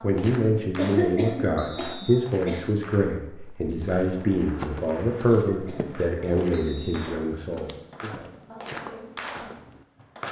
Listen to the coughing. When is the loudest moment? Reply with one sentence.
The volume of the coughing peaks at 1 second.